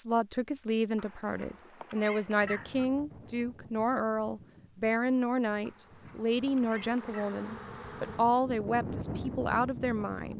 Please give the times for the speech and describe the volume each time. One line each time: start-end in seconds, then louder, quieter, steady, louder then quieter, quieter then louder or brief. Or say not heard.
0.0-10.3 steady.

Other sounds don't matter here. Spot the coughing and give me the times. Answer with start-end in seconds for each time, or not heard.
not heard.